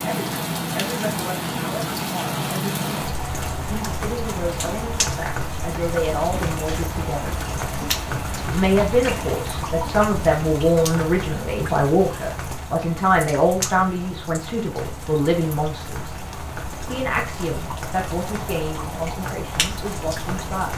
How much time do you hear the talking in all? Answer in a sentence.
The talking can be heard for 19 seconds in total.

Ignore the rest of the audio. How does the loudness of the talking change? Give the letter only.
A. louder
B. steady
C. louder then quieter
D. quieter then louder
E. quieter
C.